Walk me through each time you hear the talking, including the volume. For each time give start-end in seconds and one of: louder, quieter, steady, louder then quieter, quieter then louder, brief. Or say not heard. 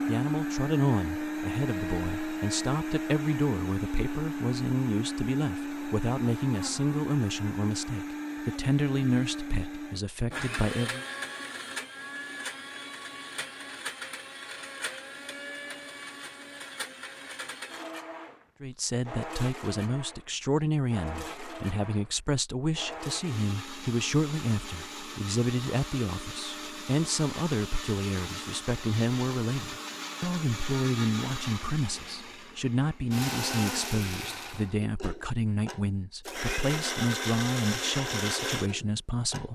0.1-11.1 steady
18.6-39.5 steady.